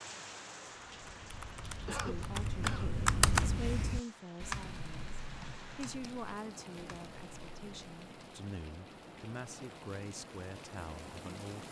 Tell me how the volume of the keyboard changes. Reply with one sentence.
The volume of the keyboard goes up, then down.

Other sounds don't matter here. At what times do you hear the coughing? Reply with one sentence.
The coughing can be heard from 1.9 to 3.0 s.